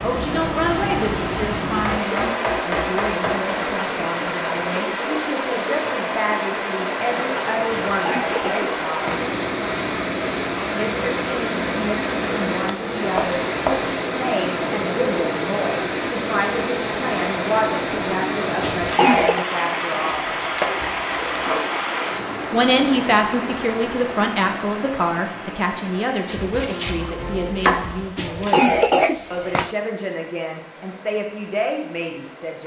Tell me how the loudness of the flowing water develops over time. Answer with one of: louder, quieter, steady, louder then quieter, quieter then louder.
quieter.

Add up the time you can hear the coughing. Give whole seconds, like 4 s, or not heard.
4 s.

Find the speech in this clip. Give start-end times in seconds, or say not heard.
0.0-9.2, 10.8-20.2, 22.5-32.6.